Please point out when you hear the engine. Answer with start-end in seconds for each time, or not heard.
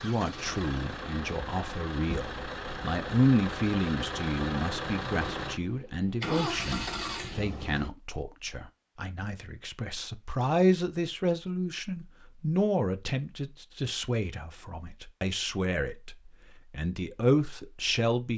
0.0-7.9.